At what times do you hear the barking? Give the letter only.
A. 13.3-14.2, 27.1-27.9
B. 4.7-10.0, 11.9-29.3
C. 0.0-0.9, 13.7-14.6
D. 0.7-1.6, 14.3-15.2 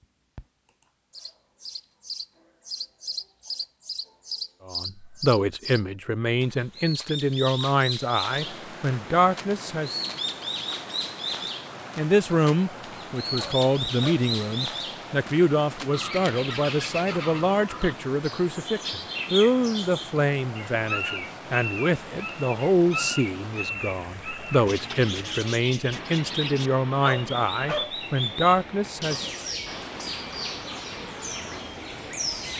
A.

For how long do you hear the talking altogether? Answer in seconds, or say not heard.
23 s.